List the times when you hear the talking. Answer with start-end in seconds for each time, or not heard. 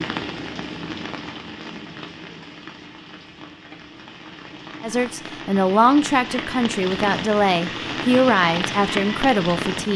4.8-9.9.